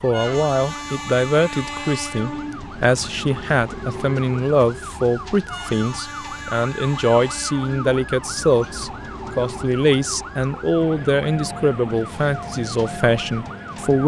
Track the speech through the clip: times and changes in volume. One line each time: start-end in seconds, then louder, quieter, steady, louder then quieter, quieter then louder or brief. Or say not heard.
0.0-14.0 steady.